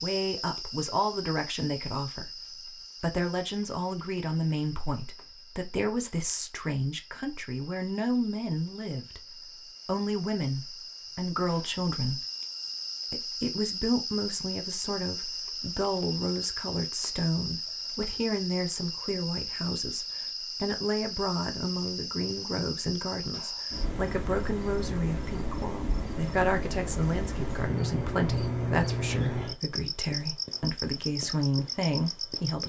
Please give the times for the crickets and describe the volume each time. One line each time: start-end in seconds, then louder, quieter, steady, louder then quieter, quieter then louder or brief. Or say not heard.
0.0-32.6 louder.